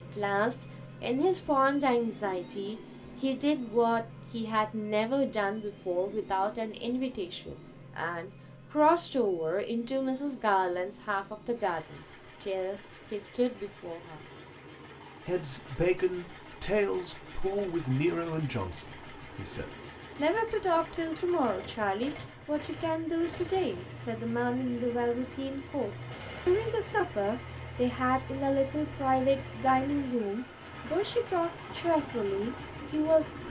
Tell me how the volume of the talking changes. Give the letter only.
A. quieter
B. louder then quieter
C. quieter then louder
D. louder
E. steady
E.